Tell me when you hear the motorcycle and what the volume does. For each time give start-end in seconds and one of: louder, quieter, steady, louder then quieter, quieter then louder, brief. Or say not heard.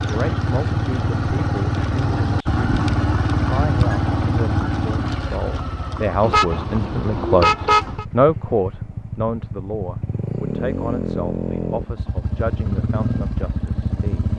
0.0-14.3 quieter then louder.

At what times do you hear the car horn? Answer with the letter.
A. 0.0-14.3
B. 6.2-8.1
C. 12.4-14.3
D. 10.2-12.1
B.